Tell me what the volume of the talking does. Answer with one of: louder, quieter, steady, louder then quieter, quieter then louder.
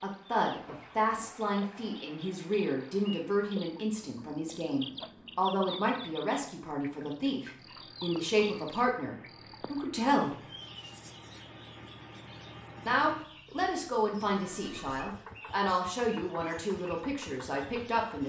steady.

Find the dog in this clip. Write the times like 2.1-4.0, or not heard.
not heard.